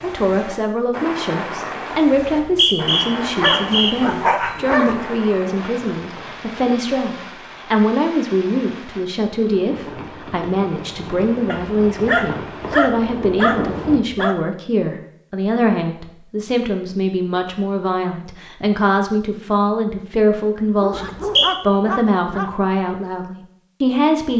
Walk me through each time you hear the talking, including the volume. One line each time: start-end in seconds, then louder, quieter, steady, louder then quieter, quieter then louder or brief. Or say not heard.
0.0-24.3 steady.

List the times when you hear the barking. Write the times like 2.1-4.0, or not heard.
3.4-5.0, 11.5-14.3, 20.6-22.6.